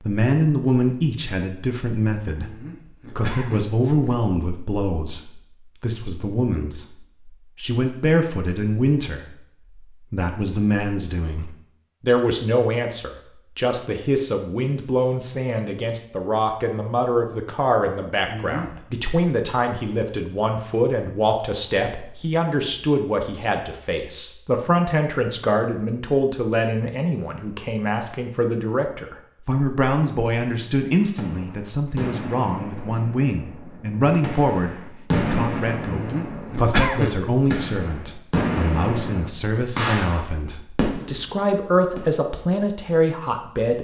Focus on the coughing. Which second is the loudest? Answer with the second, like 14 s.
37 s.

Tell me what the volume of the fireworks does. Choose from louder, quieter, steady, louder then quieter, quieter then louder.
louder.